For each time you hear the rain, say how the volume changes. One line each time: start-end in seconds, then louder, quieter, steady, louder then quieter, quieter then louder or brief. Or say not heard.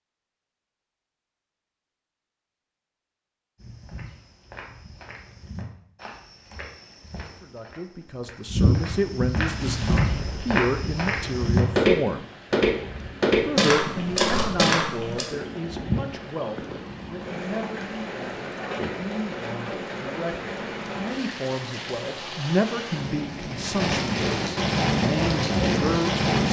9.4-26.4 louder.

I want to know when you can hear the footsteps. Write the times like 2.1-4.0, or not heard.
3.5-15.2.